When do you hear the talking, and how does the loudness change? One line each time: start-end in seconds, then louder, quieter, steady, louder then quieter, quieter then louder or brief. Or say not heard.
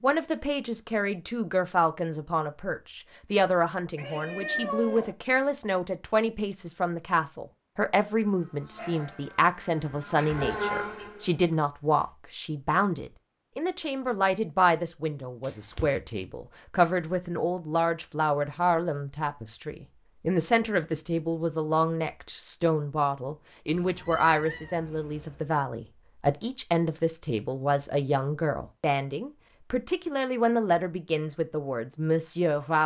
0.0-32.8 steady.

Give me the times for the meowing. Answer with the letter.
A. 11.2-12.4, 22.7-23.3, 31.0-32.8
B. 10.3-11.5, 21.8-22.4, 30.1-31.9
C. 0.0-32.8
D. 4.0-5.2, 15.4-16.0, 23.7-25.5
D.